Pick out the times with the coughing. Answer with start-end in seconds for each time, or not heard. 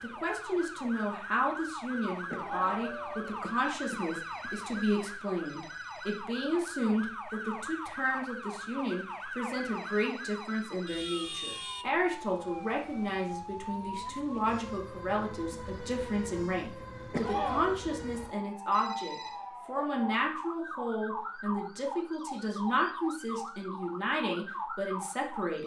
2.3-4.7, 17.1-17.8.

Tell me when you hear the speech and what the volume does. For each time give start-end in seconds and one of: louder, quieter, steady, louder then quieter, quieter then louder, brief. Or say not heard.
0.0-25.6 steady.